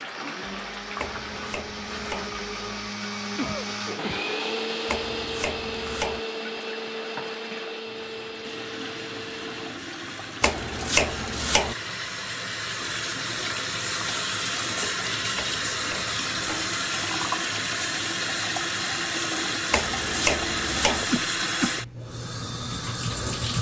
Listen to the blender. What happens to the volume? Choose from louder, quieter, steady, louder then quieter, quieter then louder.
louder then quieter.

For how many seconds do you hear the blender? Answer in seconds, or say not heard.
10 s.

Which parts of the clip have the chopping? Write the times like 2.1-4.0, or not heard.
0.9-2.3, 4.8-6.2, 10.4-11.8, 15.3-16.7, 19.7-21.1.